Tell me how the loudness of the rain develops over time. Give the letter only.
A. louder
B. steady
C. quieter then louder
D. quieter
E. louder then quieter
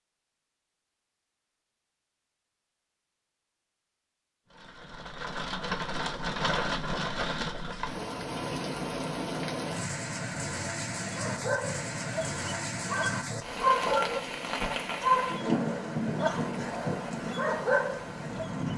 B.